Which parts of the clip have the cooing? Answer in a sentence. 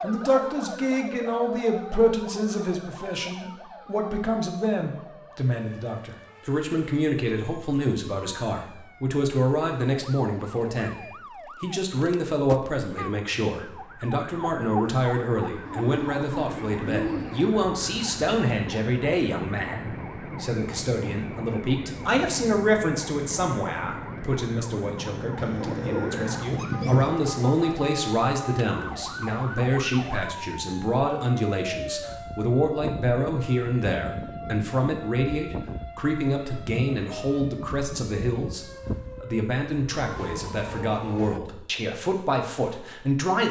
The cooing can be heard from 15.7 to 17.4 s and from 25.4 to 27.1 s.